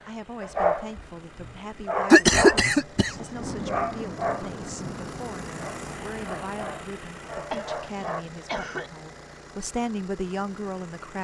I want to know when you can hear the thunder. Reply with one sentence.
The thunder can be heard from 3.0 to 6.6 s.